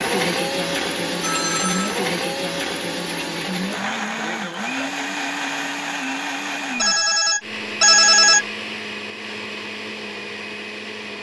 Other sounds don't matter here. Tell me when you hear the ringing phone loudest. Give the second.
8 s.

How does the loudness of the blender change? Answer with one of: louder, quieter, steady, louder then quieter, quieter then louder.
quieter.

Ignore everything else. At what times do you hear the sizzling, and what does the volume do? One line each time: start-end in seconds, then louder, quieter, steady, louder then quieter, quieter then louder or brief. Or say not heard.
not heard.